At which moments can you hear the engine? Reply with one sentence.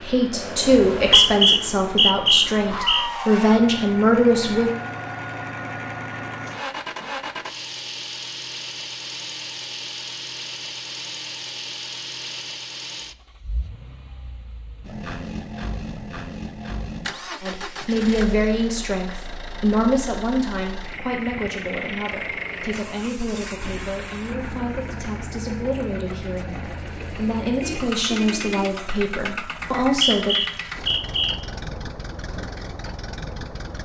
You can hear the engine from 0.0 to 33.8 s.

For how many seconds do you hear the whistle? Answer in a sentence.
The whistle can be heard for 4 seconds in total.